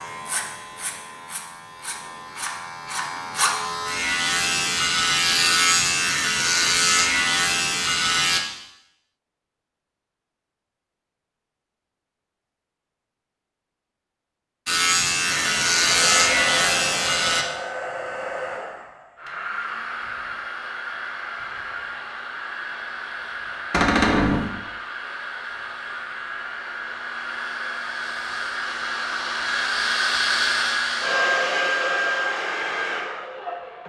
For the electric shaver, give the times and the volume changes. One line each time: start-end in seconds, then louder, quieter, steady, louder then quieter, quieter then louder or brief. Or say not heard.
0.0-8.4 louder
14.7-17.4 brief.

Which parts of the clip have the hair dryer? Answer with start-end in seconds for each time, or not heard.
15.2-33.8.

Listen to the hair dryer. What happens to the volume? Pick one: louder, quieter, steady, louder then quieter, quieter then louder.
louder.